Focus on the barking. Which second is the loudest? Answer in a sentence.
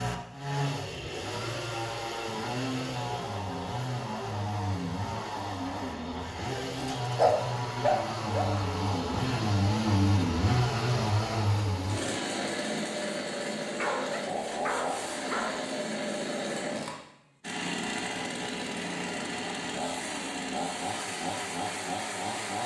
The volume of the barking peaks at 7 seconds.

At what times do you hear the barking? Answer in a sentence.
The barking can be heard from 6.8 to 8.5 s and from 13.8 to 15.7 s.